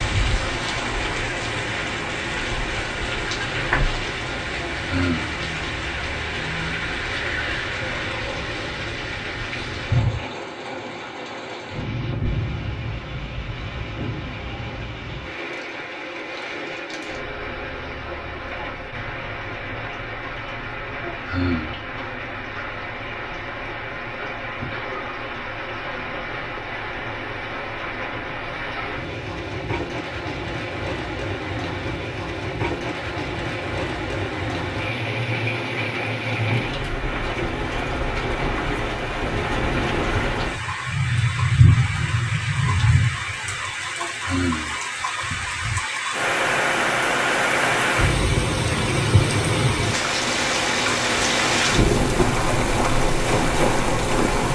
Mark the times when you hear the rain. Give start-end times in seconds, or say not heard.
0.0-54.4.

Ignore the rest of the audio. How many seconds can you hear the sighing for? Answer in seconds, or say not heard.
2 s.